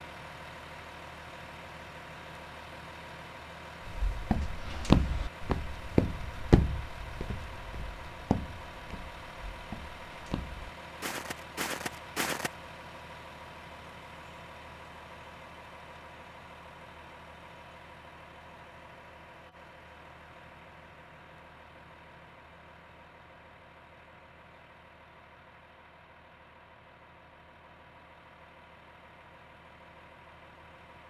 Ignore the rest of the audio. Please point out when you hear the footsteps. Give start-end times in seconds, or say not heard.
3.9-12.5.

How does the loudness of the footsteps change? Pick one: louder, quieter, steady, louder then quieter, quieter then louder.
quieter then louder.